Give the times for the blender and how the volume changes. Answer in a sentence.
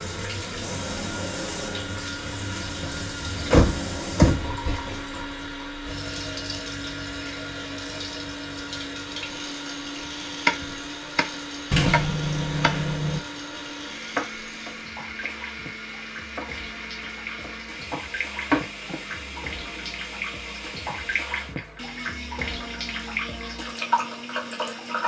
You can hear the blender from 0.0 to 25.0 s, at a steady volume.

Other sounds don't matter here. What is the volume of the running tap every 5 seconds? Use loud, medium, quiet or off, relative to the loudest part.
loud, medium, medium, medium, loud.